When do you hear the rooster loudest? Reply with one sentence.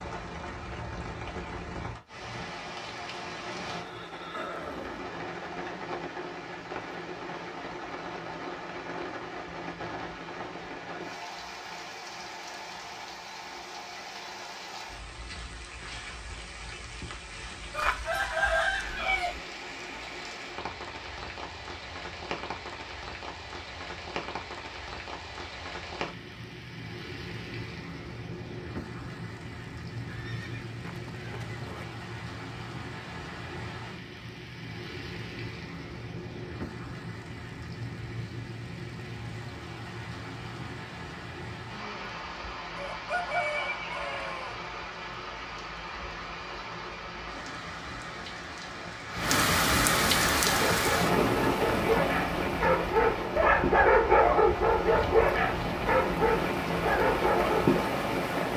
The loudest moment of the rooster is at 19 seconds.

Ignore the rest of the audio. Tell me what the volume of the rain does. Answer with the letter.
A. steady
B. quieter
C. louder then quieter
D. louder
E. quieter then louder
D.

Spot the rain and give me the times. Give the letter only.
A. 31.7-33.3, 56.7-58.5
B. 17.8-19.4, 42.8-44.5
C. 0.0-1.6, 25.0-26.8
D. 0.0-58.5
D.